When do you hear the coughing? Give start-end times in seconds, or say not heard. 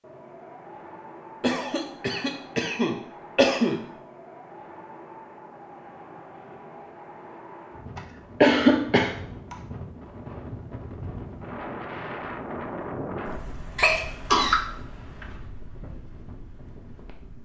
1.4-3.8, 8.0-9.6, 13.8-14.6.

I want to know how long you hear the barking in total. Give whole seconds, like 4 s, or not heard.
not heard.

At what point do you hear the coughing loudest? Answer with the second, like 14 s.
9 s.